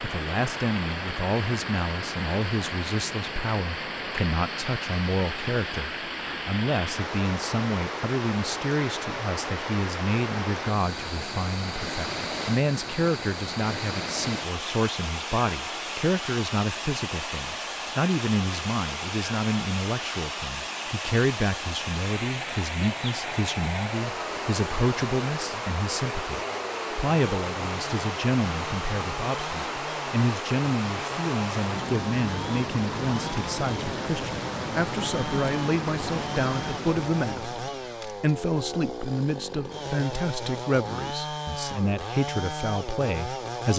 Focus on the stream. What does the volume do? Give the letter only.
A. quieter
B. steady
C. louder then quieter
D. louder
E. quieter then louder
B.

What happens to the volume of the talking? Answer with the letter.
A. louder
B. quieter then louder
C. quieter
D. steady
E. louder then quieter
D.